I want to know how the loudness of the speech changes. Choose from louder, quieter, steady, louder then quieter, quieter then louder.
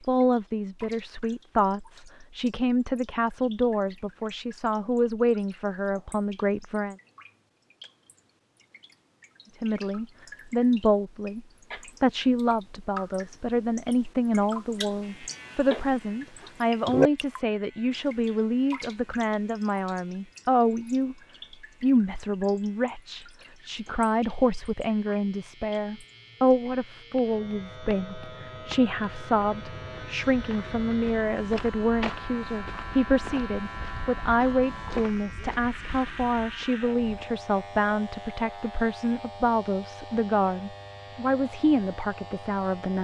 steady.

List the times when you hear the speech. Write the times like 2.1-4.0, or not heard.
0.1-7.0, 9.6-21.1, 21.8-42.9.